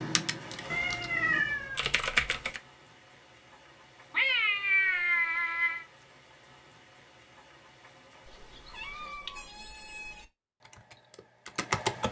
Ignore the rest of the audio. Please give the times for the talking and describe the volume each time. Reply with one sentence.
The talking can't be heard in this clip.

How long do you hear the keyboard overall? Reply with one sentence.
The keyboard can be heard for 4 seconds in total.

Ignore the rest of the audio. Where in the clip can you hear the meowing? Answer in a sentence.
You can hear the meowing from 0.7 to 1.8 s, from 4.1 to 5.8 s and from 8.2 to 10.2 s.